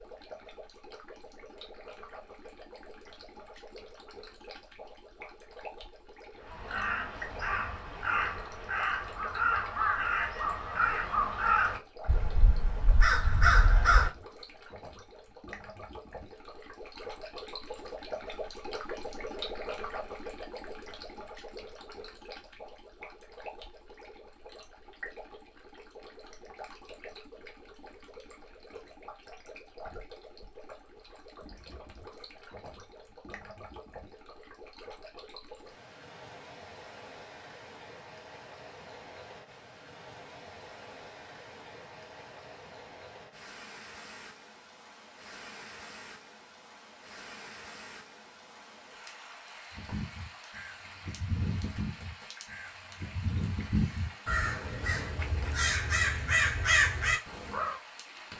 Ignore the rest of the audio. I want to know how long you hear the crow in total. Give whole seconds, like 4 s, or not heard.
16 s.